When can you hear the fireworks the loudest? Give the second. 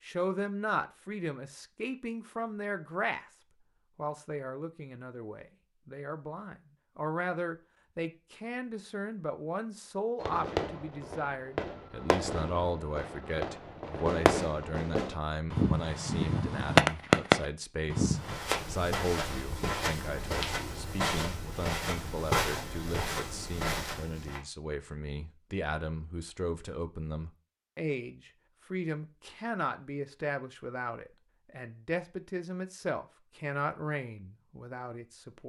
17 s.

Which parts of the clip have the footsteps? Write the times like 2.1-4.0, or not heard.
18.1-24.4.